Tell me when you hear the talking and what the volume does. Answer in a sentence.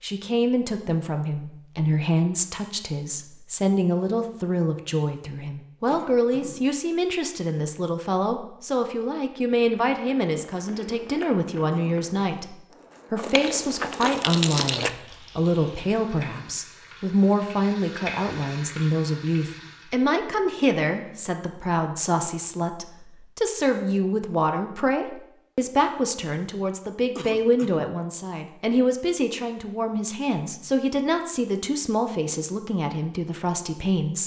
The talking can be heard from 0.0 to 34.2 s, at a steady volume.